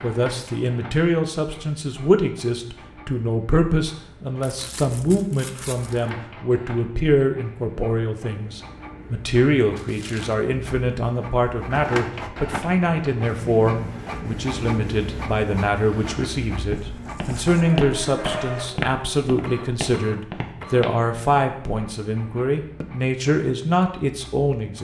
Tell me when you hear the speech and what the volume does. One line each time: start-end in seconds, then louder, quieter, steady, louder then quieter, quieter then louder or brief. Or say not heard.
0.0-24.7 steady.